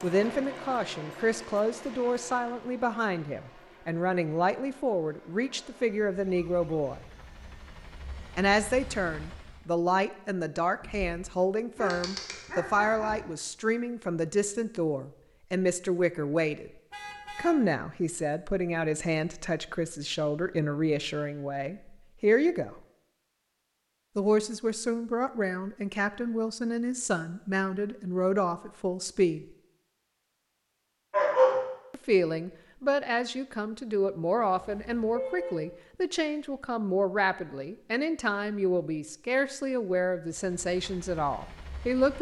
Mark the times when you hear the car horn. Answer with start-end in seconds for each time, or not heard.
10.8-11.3, 16.9-17.5, 34.5-35.5.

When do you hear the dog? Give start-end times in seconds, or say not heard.
11.8-13.2, 31.1-31.6.